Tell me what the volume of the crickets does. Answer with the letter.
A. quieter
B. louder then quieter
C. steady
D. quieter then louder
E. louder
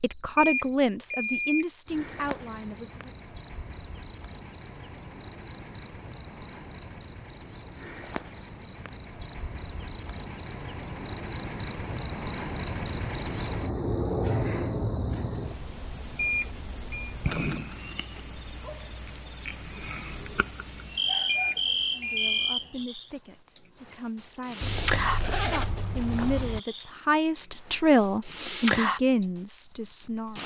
E.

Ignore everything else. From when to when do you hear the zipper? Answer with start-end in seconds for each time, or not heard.
24.6-26.6.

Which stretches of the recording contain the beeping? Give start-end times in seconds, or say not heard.
0.3-1.6, 16.1-17.1, 21.2-22.6.